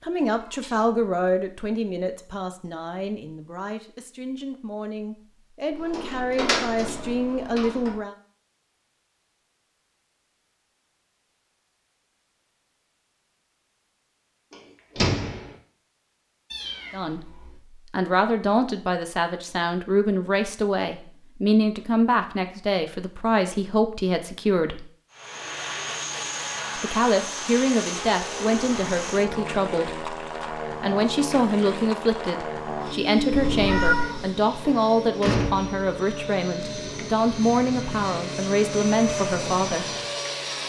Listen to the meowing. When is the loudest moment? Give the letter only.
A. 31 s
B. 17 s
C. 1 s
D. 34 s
D.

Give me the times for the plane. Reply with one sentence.
The plane can be heard from 25.1 to 40.6 s.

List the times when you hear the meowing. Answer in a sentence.
The meowing can be heard from 0.2 to 0.8 s, from 16.5 to 17.6 s and from 33.3 to 34.2 s.